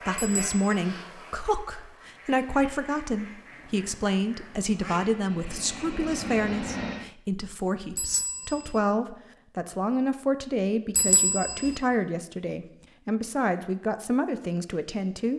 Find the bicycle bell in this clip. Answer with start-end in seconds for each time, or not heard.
0.1-0.6, 8.0-8.8, 10.9-11.8.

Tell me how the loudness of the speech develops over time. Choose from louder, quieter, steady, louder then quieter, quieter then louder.
steady.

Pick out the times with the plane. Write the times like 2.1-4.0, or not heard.
3.4-7.2.